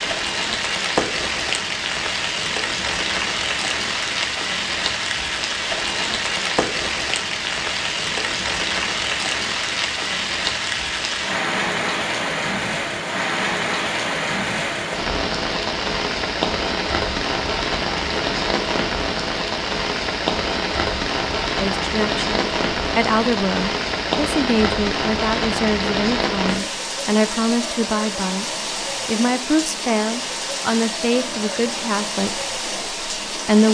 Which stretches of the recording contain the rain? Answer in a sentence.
You can hear the rain from 0.0 to 33.6 s.